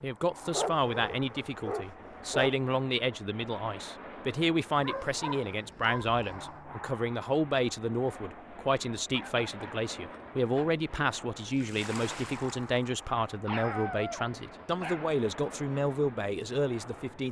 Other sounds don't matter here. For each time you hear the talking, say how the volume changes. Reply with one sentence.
You can hear the talking from 0.0 to 17.2 s, at a steady volume.